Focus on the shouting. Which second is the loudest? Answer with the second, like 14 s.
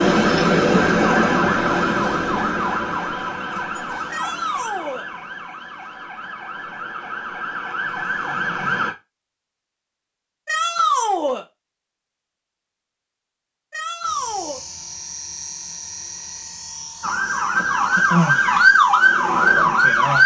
11 s.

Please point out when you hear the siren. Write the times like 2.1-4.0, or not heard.
0.0-8.9, 17.0-20.2.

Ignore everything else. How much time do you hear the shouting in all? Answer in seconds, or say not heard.
3 s.